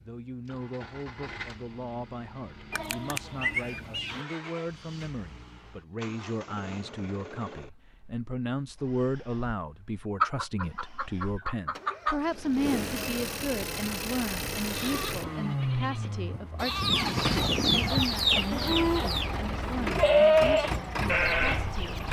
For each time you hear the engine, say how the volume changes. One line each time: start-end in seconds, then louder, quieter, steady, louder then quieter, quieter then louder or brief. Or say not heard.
0.0-22.0 louder.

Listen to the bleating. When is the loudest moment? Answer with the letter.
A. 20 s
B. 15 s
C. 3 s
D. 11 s
A.